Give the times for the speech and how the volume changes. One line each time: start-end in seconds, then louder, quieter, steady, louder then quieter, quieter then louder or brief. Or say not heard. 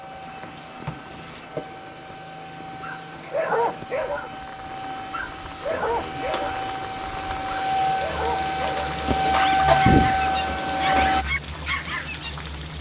not heard.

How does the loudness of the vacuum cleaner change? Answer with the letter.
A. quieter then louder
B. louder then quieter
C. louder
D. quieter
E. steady
C.